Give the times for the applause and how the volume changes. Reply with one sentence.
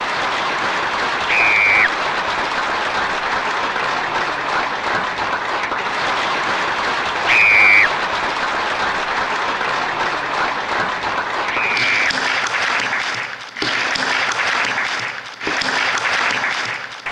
The applause can be heard from 0.0 to 17.0 s, at a steady volume.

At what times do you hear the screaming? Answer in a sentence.
The screaming can be heard from 1.2 to 1.9 s, from 7.2 to 7.9 s and from 11.5 to 12.2 s.